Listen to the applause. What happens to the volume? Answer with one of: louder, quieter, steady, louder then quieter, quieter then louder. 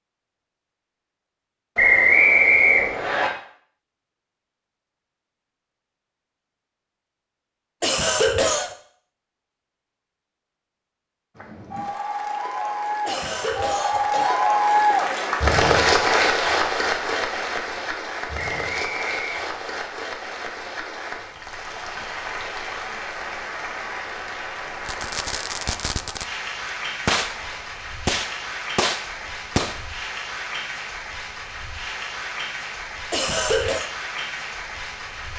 quieter.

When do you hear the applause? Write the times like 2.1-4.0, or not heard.
11.3-35.3.